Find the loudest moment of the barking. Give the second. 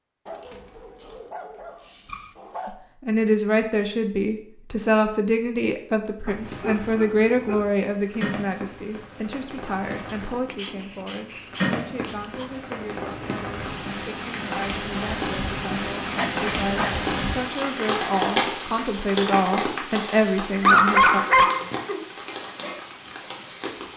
21 s.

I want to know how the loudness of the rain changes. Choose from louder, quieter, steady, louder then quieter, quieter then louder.
louder then quieter.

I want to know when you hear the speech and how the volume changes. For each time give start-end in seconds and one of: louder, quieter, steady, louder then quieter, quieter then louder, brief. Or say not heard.
2.6-21.2 quieter then louder.